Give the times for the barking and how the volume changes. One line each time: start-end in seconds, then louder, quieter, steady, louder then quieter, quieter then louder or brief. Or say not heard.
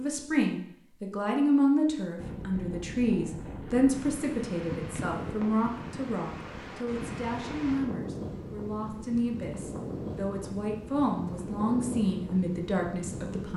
not heard.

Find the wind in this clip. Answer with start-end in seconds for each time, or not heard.
2.1-13.5.